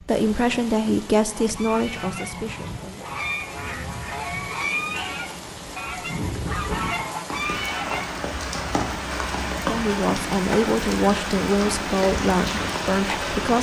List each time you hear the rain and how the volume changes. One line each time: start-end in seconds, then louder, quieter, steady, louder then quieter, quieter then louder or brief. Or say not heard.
0.0-13.5 louder.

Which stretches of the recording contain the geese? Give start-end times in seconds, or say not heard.
1.2-8.1.